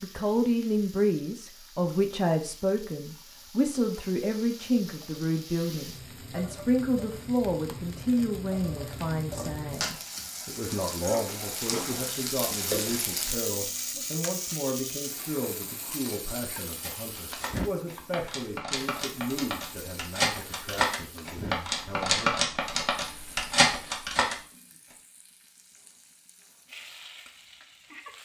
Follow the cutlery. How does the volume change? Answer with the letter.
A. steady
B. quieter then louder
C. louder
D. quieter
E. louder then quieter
C.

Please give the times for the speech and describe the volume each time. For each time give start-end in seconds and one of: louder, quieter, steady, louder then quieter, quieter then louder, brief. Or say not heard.
0.0-22.4 quieter.